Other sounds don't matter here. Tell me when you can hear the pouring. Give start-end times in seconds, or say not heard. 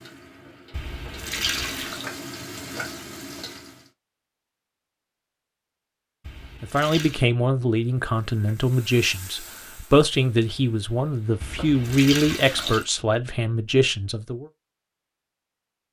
0.7-2.0, 6.2-7.2, 11.4-12.8.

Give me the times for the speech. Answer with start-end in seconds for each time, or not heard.
6.6-14.5.